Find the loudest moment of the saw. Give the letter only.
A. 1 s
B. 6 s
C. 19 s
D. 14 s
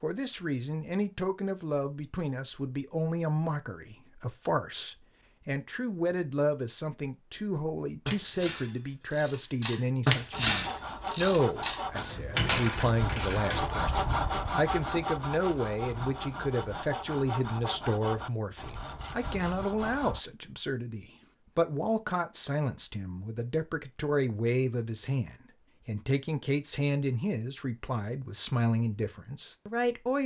D.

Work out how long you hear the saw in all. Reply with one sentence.
The saw can be heard for 10 seconds in total.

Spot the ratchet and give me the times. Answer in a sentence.
You can hear the ratchet from 8.1 to 13.6 s.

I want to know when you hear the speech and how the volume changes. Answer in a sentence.
You can hear the speech from 0.0 to 30.2 s, at a steady volume.